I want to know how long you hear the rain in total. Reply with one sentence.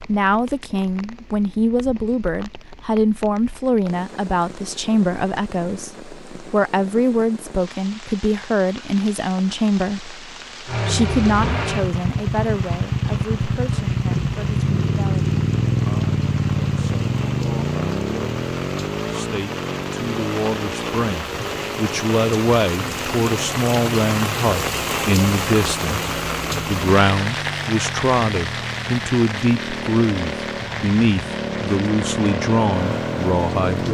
The rain can be heard for 34 seconds in total.